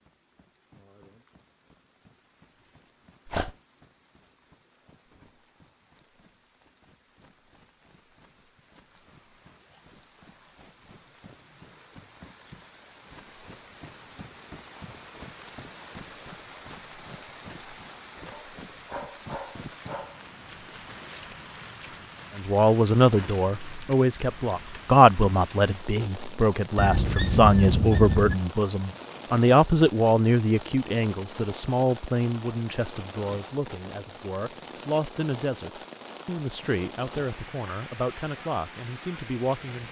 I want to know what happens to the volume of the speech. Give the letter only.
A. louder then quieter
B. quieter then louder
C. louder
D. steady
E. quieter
E.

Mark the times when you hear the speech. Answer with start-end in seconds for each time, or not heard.
22.4-39.8.